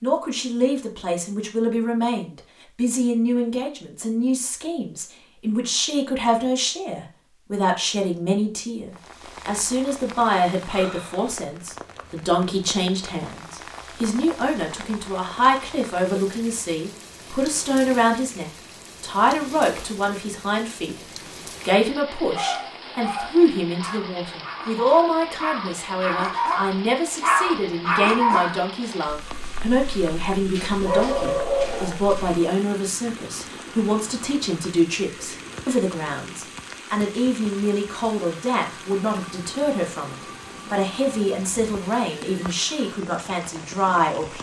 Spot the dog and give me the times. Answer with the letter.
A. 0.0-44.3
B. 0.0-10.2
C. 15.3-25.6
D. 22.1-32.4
D.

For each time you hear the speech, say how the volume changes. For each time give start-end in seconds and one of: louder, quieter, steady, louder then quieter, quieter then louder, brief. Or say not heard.
0.0-44.3 steady.